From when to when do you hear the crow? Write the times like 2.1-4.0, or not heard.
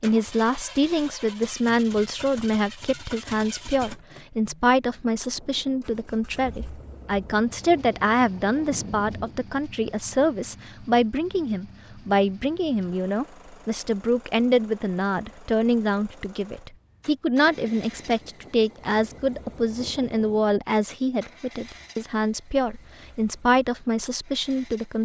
not heard.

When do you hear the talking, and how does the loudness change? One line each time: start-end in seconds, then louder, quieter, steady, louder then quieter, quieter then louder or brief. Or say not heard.
0.0-25.0 steady.